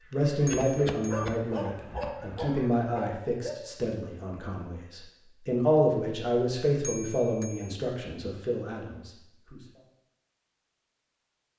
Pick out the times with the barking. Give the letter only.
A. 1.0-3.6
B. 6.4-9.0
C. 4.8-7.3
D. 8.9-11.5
A.